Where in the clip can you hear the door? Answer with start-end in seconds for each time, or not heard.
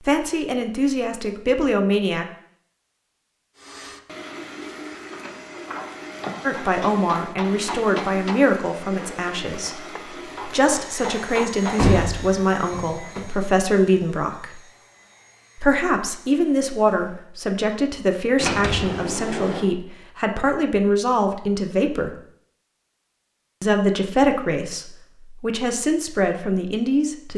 5.1-6.3, 11.8-13.2, 18.4-19.6.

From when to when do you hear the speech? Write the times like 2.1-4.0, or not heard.
0.0-2.2, 6.4-14.6, 15.6-22.2, 23.6-27.3.